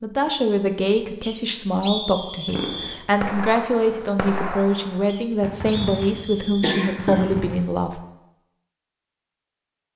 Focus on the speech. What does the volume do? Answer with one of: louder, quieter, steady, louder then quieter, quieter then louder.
steady.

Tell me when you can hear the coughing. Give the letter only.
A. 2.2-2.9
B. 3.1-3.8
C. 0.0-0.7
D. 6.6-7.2
D.